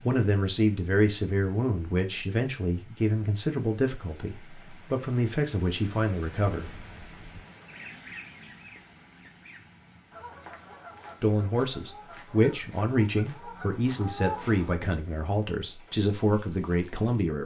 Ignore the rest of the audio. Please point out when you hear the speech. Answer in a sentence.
The speech can be heard from 0.0 to 6.8 s and from 11.2 to 17.4 s.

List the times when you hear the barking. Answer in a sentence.
You can't hear the barking here.